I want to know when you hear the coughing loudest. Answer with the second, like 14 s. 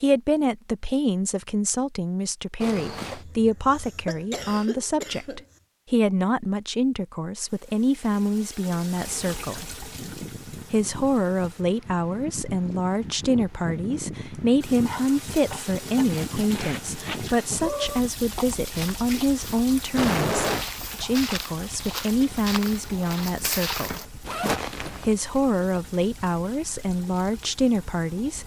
20 s.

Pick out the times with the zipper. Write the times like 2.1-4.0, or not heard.
2.6-3.2, 16.1-17.2, 24.2-25.2.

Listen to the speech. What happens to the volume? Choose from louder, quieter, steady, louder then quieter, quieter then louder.
steady.